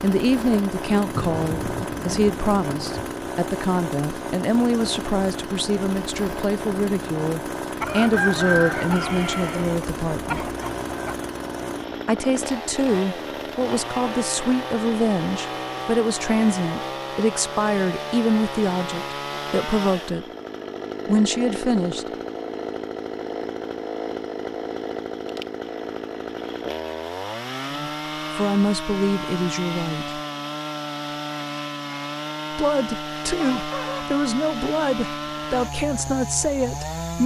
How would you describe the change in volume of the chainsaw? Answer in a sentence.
The volume of the chainsaw stays about the same.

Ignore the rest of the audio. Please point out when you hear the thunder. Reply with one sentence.
The thunder can be heard from 1.1 to 3.1 s.